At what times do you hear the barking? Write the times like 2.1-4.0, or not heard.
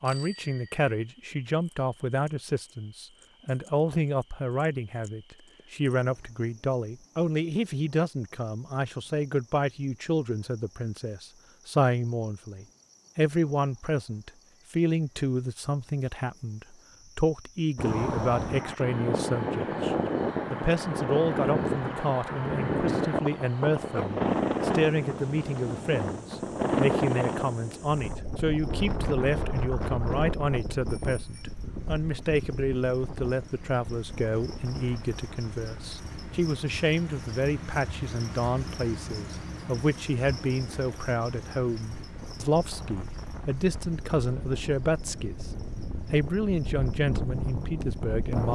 not heard.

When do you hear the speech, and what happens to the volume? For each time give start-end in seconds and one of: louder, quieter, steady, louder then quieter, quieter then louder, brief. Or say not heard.
0.0-45.5 steady
46.1-48.5 brief.